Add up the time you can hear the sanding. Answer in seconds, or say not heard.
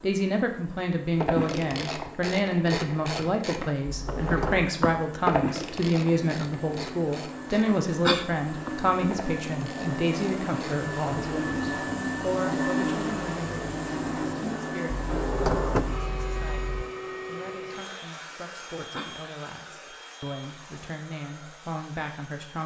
not heard.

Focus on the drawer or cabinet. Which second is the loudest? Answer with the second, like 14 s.
16 s.